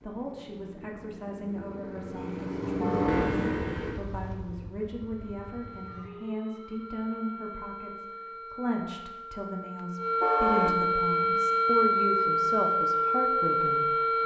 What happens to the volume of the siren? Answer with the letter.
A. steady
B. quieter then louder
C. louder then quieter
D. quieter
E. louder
E.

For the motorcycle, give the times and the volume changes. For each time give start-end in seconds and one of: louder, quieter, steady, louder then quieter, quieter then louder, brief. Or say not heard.
0.0-6.1 louder then quieter.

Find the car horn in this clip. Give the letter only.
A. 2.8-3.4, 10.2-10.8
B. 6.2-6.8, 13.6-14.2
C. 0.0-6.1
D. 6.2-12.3
A.